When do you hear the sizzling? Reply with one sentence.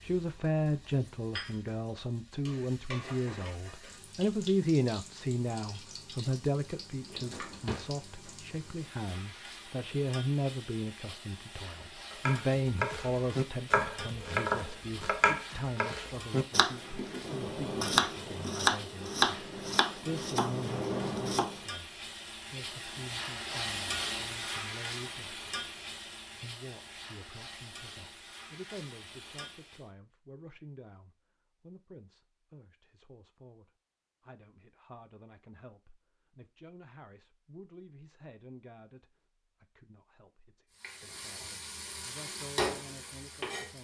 The sizzling can be heard from 0.0 to 29.9 s and from 40.7 to 43.8 s.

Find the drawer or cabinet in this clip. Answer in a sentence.
The drawer or cabinet can be heard from 7.0 to 7.9 s.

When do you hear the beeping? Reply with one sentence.
The beeping can't be heard in this clip.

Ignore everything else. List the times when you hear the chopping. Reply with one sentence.
The chopping can be heard from 12.1 to 21.6 s.